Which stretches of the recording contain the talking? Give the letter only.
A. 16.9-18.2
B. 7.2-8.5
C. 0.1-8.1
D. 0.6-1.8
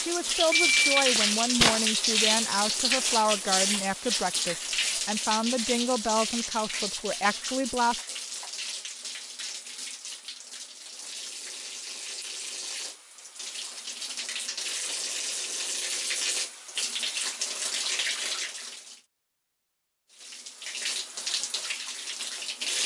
C.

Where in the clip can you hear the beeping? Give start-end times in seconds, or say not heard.
0.6-1.8.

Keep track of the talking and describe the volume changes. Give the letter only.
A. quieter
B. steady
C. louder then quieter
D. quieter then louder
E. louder
B.